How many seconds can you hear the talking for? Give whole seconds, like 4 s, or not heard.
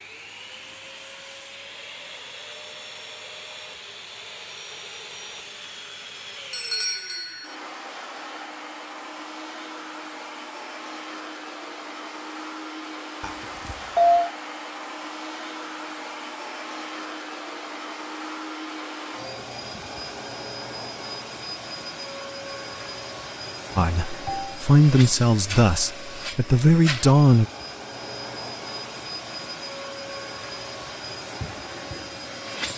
4 s.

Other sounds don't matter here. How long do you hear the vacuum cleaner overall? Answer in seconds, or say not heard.
33 s.